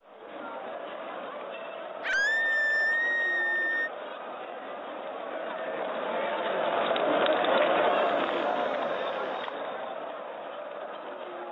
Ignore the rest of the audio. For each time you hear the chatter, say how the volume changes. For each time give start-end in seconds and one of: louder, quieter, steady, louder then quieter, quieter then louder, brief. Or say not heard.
0.0-11.4 louder then quieter.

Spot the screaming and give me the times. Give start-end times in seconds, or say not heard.
2.0-3.9, 7.8-9.6.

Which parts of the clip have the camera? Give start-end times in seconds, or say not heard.
not heard.